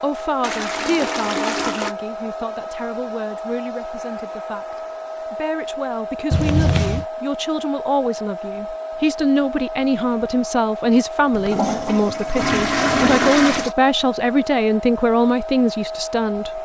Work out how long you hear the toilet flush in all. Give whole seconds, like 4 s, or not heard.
5 s.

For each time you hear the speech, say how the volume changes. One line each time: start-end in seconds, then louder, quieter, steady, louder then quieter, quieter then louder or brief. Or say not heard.
0.0-16.5 louder.